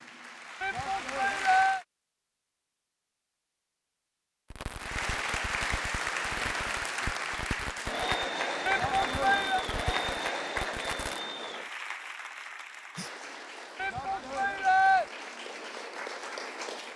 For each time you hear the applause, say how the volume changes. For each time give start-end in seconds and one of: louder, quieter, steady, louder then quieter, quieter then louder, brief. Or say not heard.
0.0-1.9 brief
4.8-16.9 quieter.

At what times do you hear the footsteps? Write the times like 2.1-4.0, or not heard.
not heard.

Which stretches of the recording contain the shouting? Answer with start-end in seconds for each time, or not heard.
0.6-1.8, 8.7-9.7, 13.8-15.1.